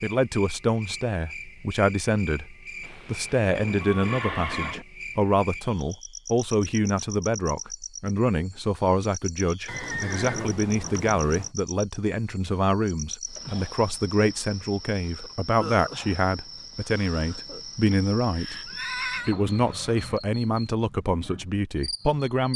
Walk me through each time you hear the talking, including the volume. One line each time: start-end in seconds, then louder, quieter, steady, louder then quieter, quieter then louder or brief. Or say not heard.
0.0-22.5 steady.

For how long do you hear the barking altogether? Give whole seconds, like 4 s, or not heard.
not heard.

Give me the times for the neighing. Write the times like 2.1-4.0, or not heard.
3.8-4.8, 9.7-11.5, 17.9-19.4.